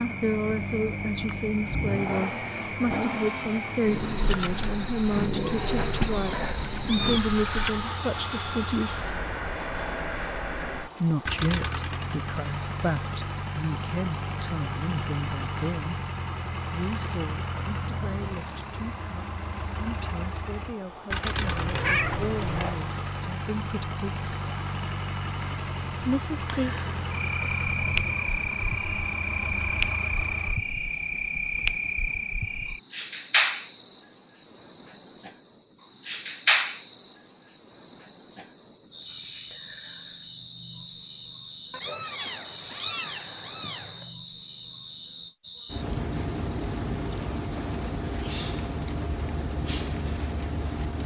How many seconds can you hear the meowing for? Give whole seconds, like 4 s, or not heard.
5 s.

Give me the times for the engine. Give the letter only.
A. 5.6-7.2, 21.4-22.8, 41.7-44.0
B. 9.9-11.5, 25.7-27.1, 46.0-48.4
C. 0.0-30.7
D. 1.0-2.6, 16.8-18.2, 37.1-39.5
C.